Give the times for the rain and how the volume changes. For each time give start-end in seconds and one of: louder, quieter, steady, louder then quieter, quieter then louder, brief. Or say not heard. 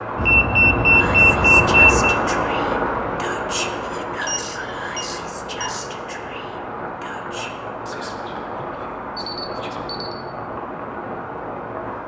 0.0-12.0 quieter.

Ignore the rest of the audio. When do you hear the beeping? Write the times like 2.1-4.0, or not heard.
0.1-2.2, 4.2-5.9, 9.2-10.2.